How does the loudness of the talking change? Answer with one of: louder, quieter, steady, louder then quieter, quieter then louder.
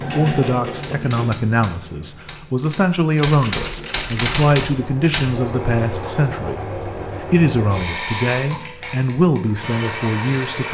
steady.